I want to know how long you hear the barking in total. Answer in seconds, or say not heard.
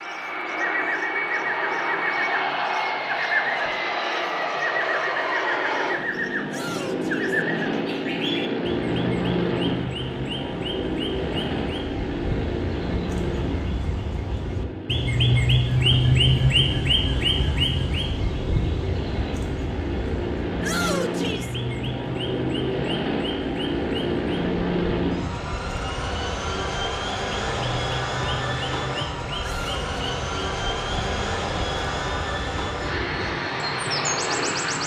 not heard.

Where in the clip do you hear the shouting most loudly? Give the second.
21 s.